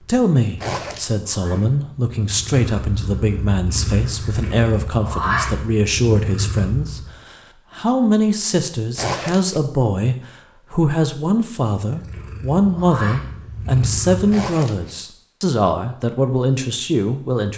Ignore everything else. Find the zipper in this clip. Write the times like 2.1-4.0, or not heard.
0.6-1.1, 8.9-9.6, 14.3-14.9.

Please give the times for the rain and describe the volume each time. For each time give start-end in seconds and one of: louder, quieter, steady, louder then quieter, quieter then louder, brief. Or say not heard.
not heard.